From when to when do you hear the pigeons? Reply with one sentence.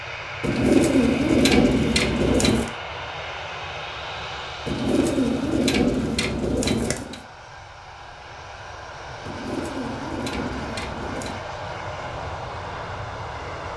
The pigeons can be heard from 0.4 to 2.7 s, from 4.7 to 7.2 s and from 9.2 to 11.4 s.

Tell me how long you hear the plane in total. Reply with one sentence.
You can hear the plane for 14 seconds altogether.